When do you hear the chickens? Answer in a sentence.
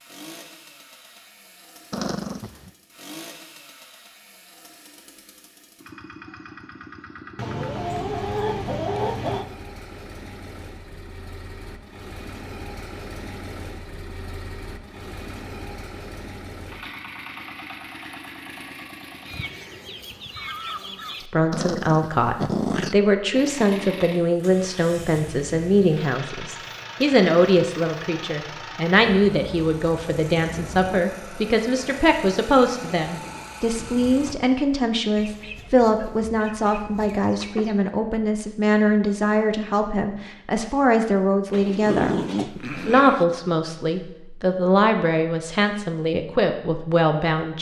The chickens can be heard from 7.3 to 9.4 s, from 19.2 to 21.3 s and from 35.1 to 37.8 s.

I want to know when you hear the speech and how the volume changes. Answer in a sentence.
You can hear the speech from 21.2 to 47.5 s, at a steady volume.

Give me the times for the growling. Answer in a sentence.
You can hear the growling from 1.9 to 2.7 s, from 21.5 to 23.0 s and from 41.5 to 43.2 s.